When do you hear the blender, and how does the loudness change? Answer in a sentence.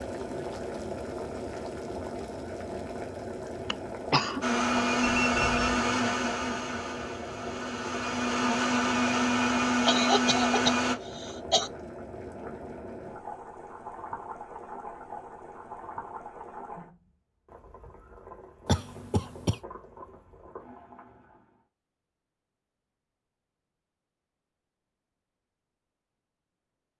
The blender can be heard from 4.4 to 10.9 s, getting quieter then louder.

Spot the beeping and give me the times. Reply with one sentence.
The beeping can be heard from 5.0 to 5.8 s.